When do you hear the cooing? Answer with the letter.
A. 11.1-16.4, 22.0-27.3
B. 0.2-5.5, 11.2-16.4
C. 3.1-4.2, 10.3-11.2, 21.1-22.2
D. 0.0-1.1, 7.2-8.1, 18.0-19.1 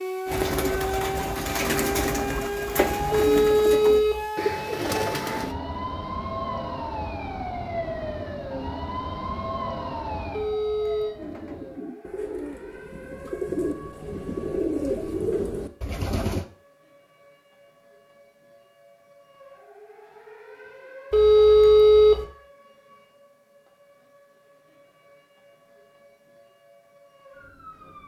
B.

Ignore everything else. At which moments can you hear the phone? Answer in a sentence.
The phone can be heard from 3.1 to 4.2 s, from 10.3 to 11.2 s and from 21.1 to 22.2 s.